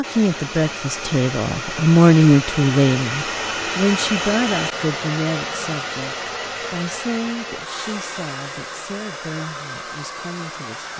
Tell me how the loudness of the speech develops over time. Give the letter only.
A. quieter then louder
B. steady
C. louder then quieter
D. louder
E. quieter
E.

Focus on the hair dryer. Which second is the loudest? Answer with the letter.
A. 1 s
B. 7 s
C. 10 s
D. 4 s
D.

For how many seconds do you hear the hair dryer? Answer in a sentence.
The hair dryer can be heard for 11 seconds in total.